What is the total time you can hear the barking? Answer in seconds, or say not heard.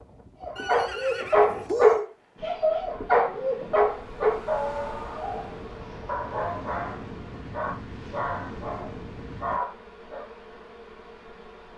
10 s.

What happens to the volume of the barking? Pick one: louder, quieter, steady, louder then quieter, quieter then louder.
quieter.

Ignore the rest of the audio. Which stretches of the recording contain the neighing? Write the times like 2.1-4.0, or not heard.
0.6-2.1.